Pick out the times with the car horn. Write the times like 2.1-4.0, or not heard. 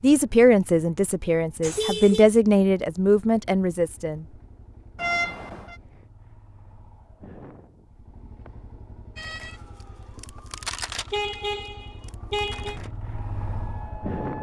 1.6-2.2, 5.0-5.8, 11.1-12.8.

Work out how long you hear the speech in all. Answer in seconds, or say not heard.
4 s.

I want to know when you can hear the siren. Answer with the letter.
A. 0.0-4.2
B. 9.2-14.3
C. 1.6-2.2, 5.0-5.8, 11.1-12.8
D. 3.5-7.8
B.